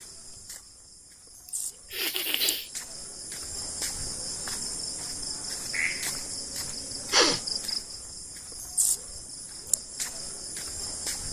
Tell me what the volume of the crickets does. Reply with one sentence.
The loudness of the crickets goes up.